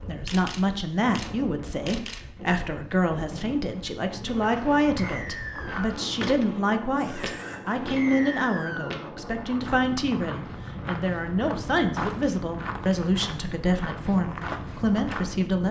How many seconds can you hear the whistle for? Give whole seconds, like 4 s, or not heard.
2 s.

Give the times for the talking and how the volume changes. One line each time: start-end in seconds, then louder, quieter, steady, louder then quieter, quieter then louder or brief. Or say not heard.
0.0-15.6 steady.